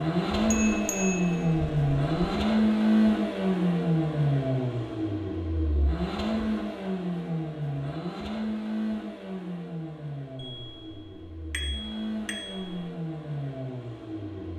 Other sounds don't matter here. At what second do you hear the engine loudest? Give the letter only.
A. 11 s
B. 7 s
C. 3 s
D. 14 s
C.